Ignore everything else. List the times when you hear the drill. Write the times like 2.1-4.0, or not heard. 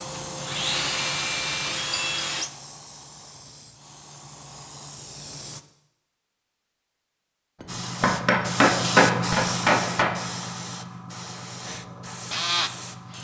0.0-2.5, 11.6-13.1.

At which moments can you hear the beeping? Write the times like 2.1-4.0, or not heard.
not heard.